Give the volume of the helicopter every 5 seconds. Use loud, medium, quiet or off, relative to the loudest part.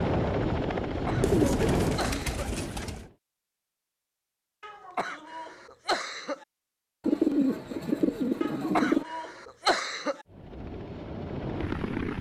loud, off, medium.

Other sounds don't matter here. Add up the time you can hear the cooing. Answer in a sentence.
You can hear the cooing for 4 seconds altogether.